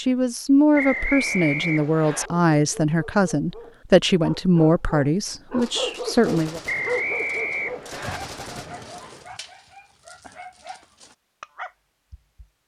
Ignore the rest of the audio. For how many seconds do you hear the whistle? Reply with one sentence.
The whistle can be heard for 3 seconds in total.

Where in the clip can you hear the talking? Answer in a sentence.
The talking can be heard from 0.0 to 6.6 s.